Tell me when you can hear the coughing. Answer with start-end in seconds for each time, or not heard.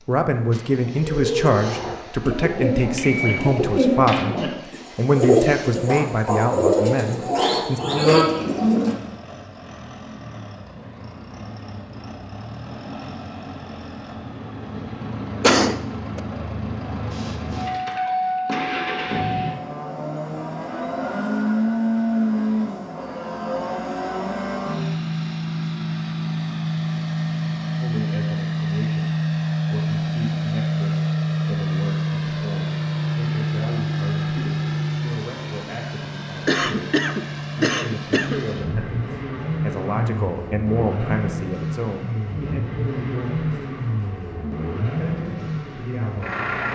15.4-16.2, 36.5-38.4.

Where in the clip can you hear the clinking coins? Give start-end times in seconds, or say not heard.
not heard.